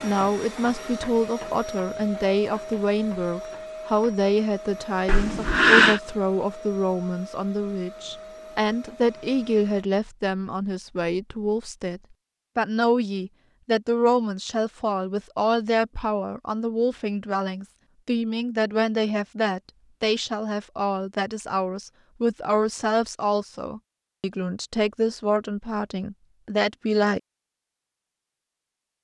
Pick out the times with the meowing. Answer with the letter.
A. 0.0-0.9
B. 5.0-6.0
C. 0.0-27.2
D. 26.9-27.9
B.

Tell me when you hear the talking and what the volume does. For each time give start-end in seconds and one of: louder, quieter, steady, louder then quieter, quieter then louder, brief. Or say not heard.
0.0-27.2 steady.